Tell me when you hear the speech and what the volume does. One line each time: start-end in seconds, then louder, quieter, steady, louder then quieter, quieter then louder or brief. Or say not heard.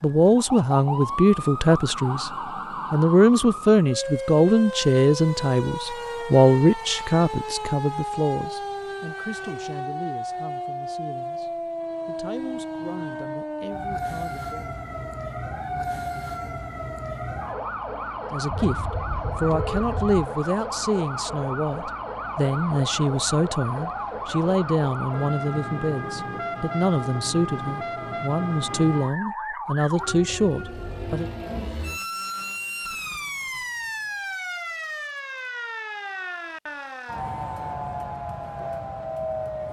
0.0-2.3 brief
2.9-14.7 quieter
18.3-18.8 brief
19.4-31.3 steady.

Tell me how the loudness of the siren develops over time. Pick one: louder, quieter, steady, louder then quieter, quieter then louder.
steady.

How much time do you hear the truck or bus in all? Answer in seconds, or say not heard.
not heard.